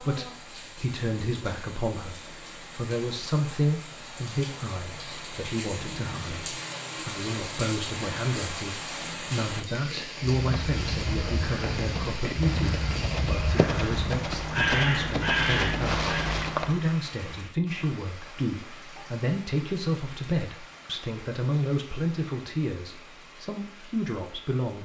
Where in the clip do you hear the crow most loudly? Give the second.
15 s.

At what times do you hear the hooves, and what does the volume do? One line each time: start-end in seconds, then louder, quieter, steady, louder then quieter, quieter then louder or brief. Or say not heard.
10.3-16.8 louder.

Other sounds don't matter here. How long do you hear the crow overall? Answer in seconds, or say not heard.
6 s.